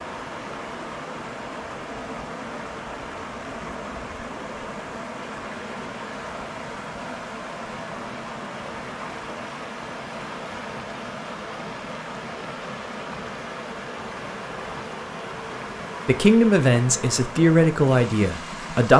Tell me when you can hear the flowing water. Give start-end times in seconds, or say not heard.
0.0-18.9.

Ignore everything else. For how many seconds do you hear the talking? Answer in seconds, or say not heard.
3 s.